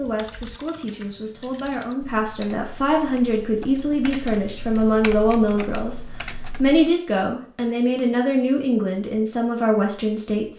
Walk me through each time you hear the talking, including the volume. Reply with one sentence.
You can hear the talking from 0.0 to 10.5 s, getting louder.